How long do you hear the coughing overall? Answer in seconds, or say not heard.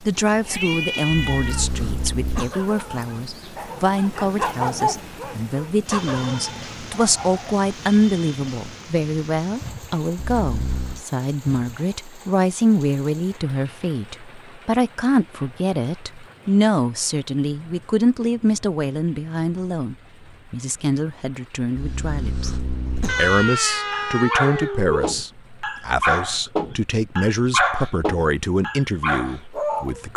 4 s.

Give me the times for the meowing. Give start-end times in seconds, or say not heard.
0.2-2.1, 23.1-25.1.